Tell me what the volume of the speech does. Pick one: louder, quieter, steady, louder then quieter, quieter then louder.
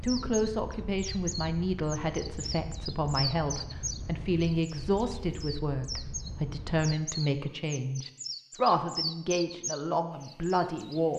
steady.